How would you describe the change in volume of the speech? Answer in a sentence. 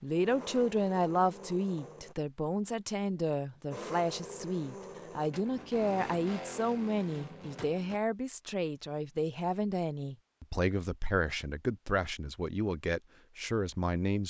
The volume of the speech stays about the same.